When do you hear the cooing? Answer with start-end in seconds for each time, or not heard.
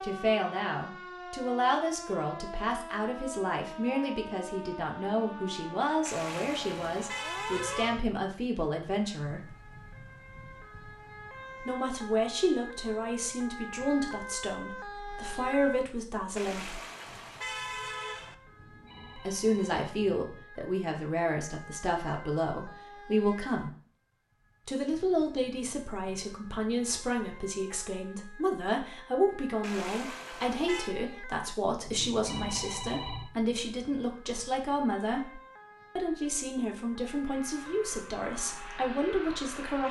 not heard.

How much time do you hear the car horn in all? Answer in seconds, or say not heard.
5 s.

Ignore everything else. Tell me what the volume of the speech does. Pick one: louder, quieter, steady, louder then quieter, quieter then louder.
steady.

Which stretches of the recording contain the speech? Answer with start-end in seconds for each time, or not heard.
0.0-9.6, 11.7-16.8, 19.1-23.7, 24.6-39.8.